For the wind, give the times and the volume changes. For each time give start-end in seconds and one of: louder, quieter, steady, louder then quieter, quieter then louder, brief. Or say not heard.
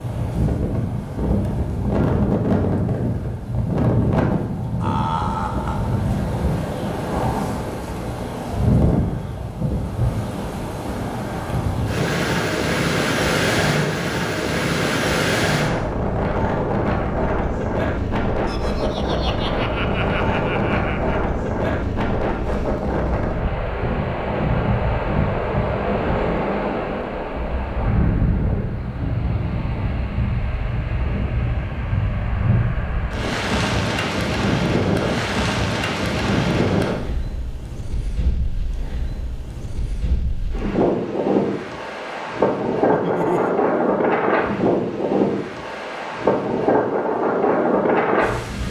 0.0-48.6 steady.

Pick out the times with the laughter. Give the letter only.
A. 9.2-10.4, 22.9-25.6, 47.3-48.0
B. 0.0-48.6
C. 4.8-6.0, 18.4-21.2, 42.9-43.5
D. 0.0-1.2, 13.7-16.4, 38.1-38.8
C.